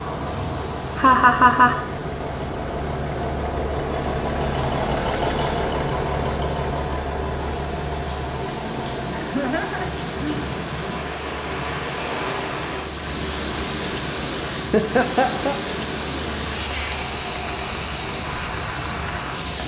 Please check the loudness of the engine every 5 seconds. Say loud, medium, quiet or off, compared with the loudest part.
loud, loud, medium, medium.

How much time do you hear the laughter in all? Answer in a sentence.
The laughter can be heard for 3 seconds in total.